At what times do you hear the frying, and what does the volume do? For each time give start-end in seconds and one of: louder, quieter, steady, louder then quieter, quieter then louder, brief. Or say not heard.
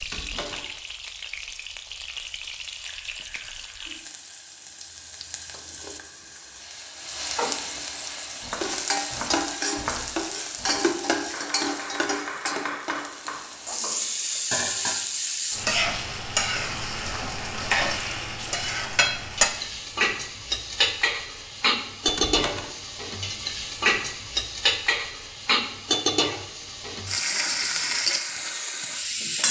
0.0-29.4 louder.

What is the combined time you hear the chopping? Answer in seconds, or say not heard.
6 s.